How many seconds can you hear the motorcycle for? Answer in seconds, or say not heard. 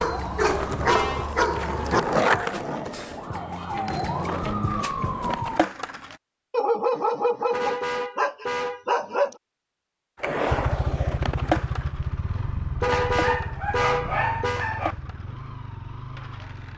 6 s.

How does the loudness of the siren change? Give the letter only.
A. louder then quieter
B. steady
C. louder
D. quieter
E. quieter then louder
C.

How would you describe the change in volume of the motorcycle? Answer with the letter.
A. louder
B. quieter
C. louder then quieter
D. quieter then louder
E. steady
B.